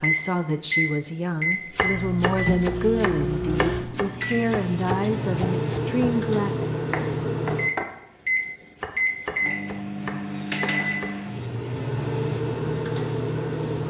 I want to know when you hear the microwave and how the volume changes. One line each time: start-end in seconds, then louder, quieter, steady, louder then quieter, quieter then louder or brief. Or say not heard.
0.0-13.8 steady.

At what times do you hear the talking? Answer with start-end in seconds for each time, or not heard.
0.0-6.5.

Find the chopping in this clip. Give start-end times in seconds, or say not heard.
1.7-7.8, 8.8-11.1.